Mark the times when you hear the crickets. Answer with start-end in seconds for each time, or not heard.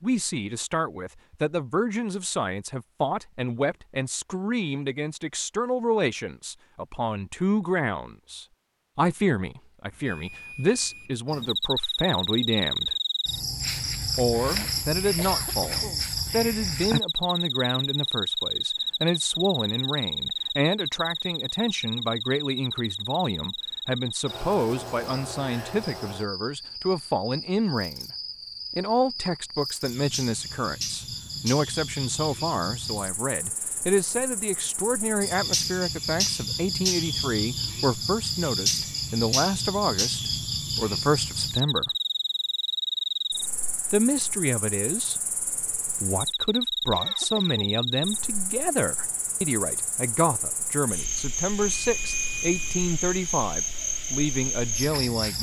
11.2-55.3.